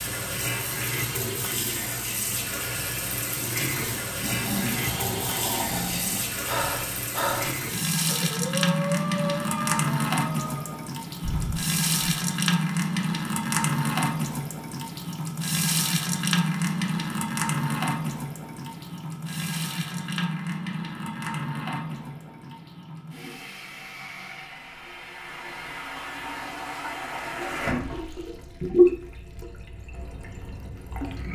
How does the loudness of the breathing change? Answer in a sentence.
The volume of the breathing goes down.